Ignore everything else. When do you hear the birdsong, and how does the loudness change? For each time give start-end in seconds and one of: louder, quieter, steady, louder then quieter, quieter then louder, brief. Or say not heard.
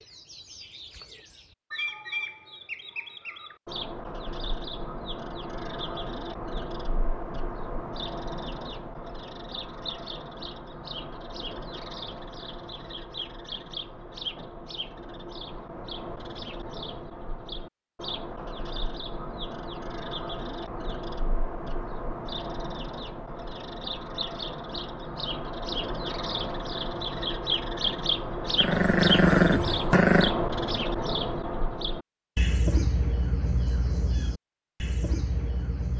0.0-35.9 louder.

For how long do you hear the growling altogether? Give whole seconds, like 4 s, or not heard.
2 s.